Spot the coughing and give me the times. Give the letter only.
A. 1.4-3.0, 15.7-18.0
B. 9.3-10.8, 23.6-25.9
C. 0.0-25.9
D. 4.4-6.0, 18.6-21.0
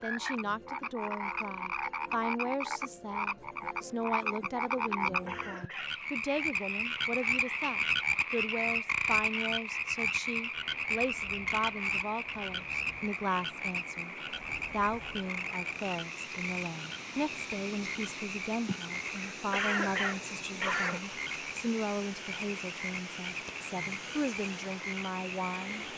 D.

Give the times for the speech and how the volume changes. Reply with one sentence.
The speech can be heard from 0.0 to 25.9 s, at a steady volume.